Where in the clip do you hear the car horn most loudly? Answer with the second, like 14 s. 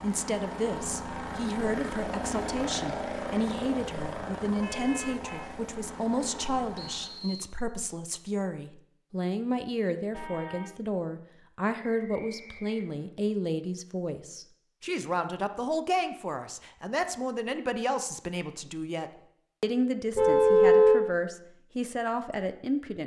21 s.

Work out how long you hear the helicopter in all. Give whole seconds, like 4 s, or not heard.
7 s.